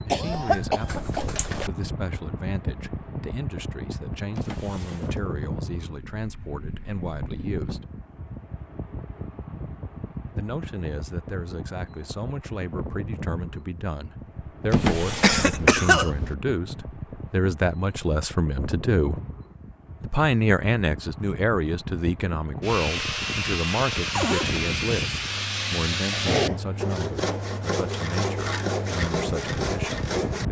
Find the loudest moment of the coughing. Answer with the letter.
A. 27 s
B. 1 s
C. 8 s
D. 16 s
D.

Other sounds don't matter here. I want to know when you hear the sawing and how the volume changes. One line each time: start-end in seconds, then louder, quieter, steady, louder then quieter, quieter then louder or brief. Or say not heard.
22.6-30.4 steady.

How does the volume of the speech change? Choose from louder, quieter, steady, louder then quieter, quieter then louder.
louder then quieter.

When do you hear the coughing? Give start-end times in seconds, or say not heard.
0.1-1.7, 15.2-16.4, 26.1-26.6.